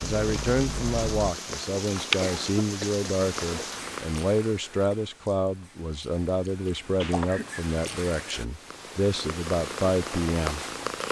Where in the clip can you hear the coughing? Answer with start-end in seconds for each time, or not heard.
2.2-3.6, 7.1-7.7.